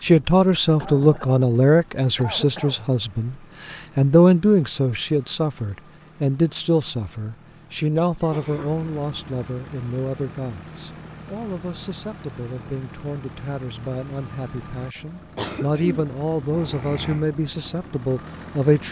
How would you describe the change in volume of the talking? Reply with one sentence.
The loudness of the talking goes down, then up.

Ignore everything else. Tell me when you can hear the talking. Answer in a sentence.
The talking can be heard from 0.0 to 18.8 s.